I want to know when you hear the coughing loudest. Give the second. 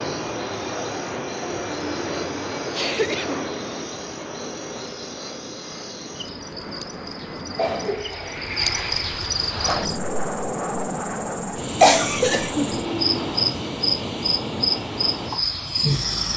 12 s.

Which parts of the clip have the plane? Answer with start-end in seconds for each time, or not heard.
0.0-16.3.